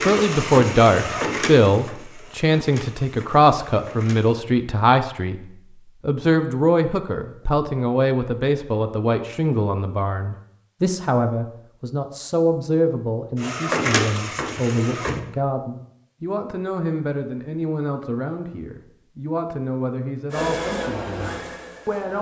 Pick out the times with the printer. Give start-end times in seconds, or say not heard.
0.0-4.3, 13.3-15.2, 20.3-22.1.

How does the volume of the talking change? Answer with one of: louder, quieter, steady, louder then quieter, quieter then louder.
quieter.